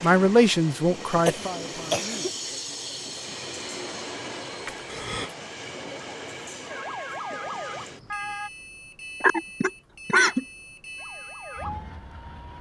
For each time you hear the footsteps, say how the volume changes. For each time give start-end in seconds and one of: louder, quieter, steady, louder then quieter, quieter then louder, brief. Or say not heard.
not heard.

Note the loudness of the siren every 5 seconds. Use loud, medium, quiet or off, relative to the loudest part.
off, loud, medium.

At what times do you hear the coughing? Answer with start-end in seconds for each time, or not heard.
1.2-2.3, 4.7-5.3, 9.2-10.4.